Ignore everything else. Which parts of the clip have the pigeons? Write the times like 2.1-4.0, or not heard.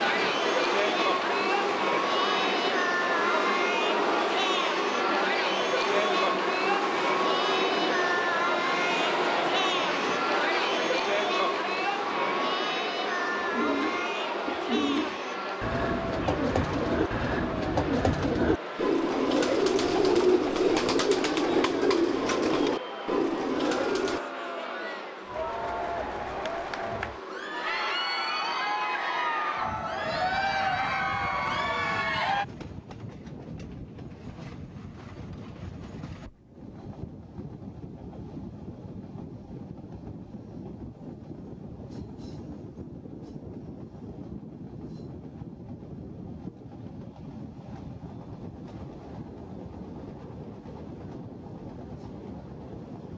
13.4-24.2.